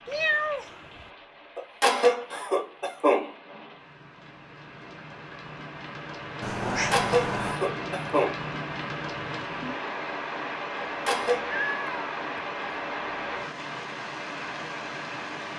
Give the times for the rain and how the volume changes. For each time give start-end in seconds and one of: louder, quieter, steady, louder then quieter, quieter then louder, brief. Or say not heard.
0.0-15.5 louder.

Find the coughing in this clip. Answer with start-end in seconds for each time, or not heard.
1.6-3.4, 6.9-8.4, 10.8-11.5.